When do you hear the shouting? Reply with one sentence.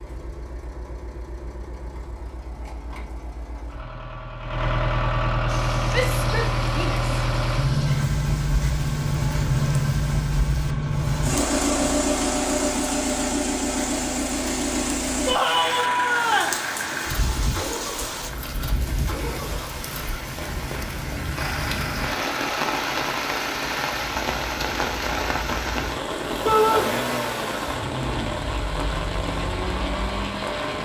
You can hear the shouting from 5.9 to 7.0 s, from 15.2 to 16.6 s and from 26.4 to 26.9 s.